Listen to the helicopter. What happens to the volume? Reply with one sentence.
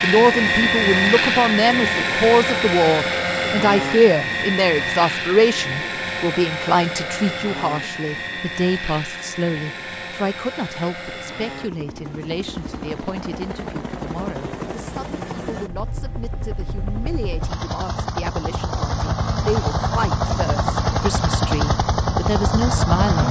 The volume of the helicopter goes down, then up.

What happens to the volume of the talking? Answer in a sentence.
The loudness of the talking goes down, then up.